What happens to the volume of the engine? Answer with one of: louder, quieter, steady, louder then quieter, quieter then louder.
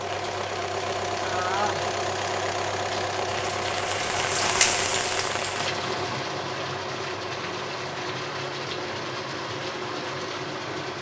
quieter.